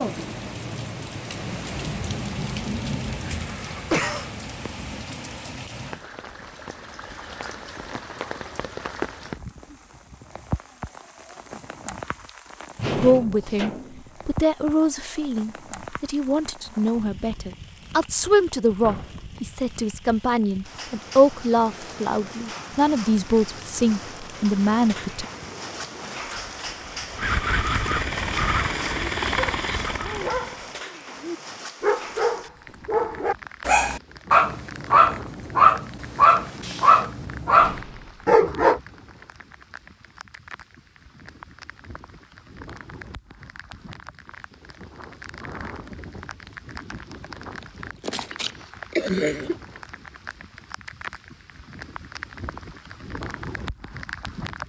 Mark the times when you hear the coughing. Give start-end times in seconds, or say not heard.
3.4-4.3, 48.0-49.5.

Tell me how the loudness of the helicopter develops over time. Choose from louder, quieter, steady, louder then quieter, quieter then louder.
louder.